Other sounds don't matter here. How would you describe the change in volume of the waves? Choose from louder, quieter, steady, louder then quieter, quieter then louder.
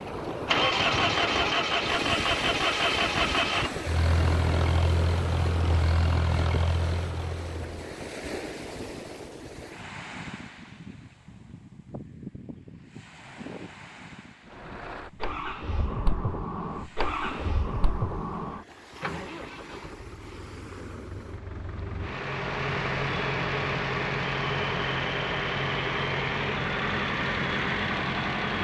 quieter.